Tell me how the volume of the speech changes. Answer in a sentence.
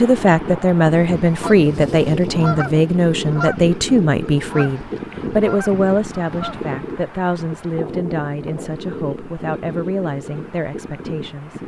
The volume of the speech goes down.